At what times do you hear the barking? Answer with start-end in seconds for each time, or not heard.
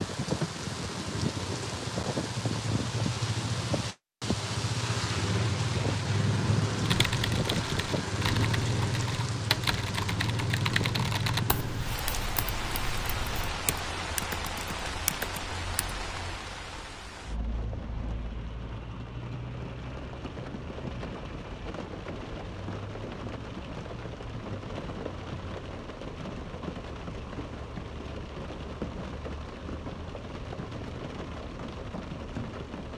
not heard.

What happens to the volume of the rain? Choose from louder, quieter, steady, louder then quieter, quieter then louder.
quieter.